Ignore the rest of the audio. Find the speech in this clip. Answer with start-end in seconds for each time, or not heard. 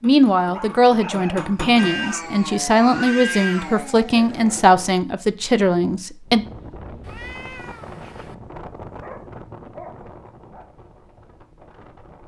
0.0-6.5.